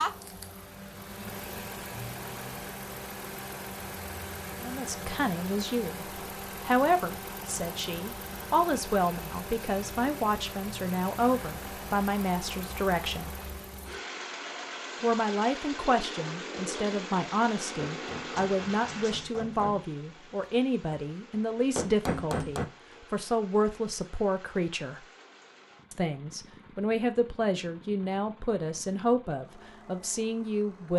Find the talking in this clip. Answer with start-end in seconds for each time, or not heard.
4.6-13.4, 15.0-25.1, 25.9-30.9.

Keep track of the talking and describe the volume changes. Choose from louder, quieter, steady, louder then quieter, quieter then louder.
steady.